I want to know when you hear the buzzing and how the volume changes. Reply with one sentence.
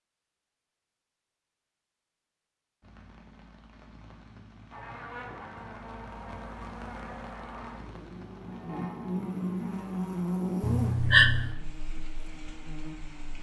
You can hear the buzzing from 4.7 to 13.3 s, getting louder then quieter.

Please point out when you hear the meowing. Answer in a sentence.
You can hear the meowing from 10.6 to 11.6 s.